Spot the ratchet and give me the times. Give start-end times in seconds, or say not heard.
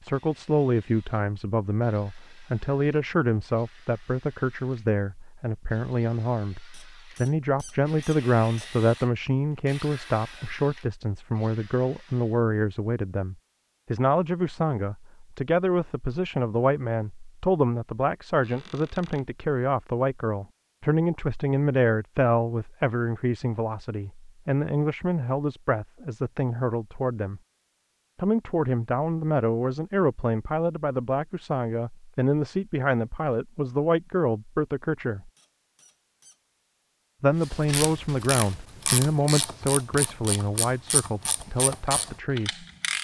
37.4-43.0.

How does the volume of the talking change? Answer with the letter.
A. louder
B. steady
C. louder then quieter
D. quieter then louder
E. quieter
B.